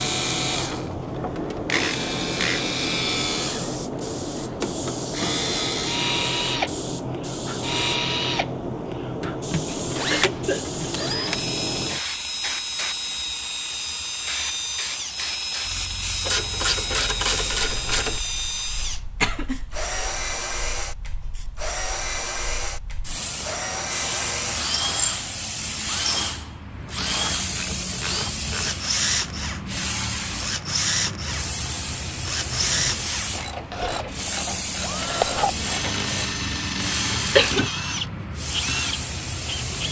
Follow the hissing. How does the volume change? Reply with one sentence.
The volume of the hissing goes down, then up.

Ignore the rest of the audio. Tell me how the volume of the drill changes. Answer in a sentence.
The volume of the drill stays about the same.